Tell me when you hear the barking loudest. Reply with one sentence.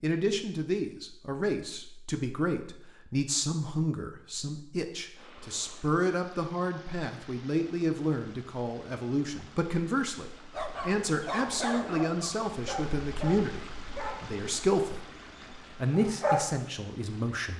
The volume of the barking peaks at 16 seconds.